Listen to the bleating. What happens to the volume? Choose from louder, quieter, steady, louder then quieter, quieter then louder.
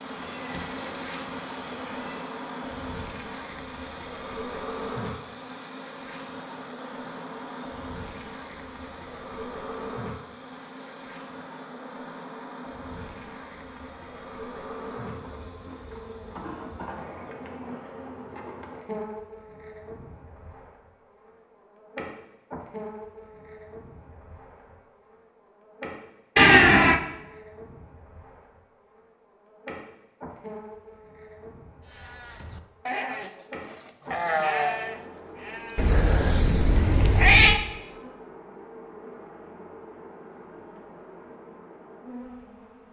louder then quieter.